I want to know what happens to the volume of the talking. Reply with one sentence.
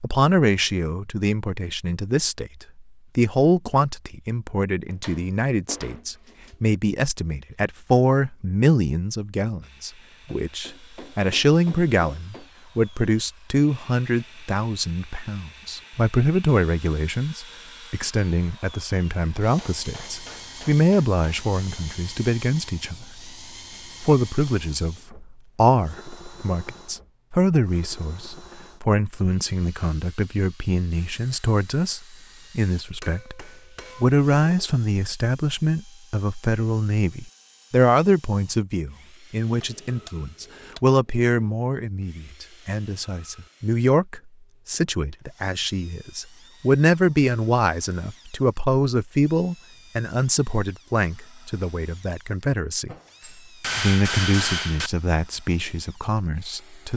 The volume of the talking stays about the same.